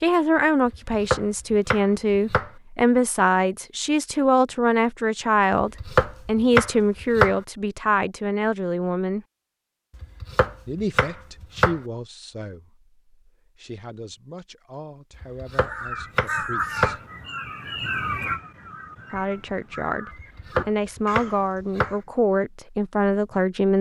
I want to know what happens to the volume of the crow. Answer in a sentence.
The volume of the crow goes down.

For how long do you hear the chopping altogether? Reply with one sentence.
You can hear the chopping for 9 seconds altogether.